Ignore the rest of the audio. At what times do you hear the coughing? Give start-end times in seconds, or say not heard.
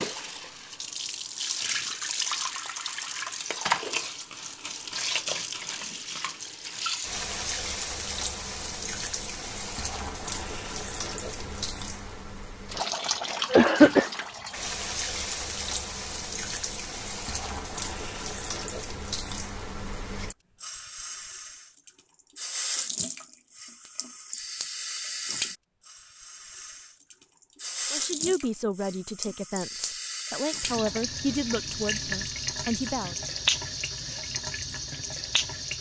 13.0-14.1.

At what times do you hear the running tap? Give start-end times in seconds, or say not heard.
0.0-35.7.